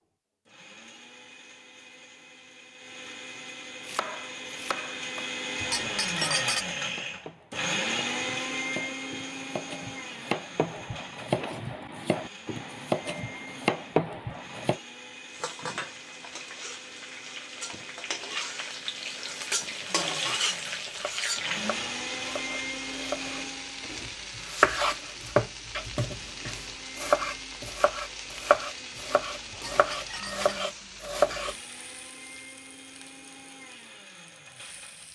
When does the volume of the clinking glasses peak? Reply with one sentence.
The loudest moment of the clinking glasses is at 6 seconds.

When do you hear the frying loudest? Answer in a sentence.
The volume of the frying peaks at 20 seconds.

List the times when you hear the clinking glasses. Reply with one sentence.
You can hear the clinking glasses from 5.6 to 6.7 s and from 29.5 to 30.6 s.